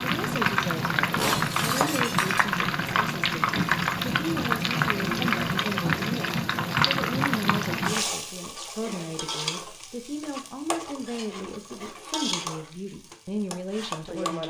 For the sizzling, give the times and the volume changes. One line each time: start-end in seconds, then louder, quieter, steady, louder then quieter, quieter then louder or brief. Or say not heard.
0.0-14.4 quieter.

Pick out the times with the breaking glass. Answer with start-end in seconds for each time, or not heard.
1.1-2.5.